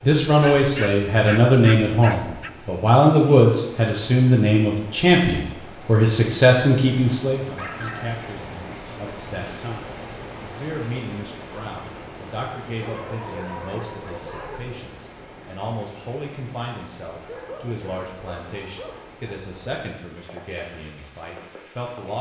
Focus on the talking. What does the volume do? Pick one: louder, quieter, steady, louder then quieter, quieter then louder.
quieter.